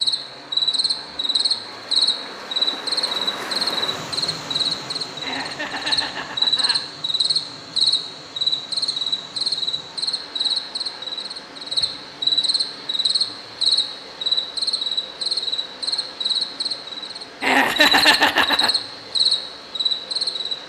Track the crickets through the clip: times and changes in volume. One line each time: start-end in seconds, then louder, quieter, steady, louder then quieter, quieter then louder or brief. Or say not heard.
0.0-20.6 steady.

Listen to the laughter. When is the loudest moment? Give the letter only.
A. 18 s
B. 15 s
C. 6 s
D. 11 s
A.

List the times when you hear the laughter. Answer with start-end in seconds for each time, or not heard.
5.2-6.8, 17.4-18.7.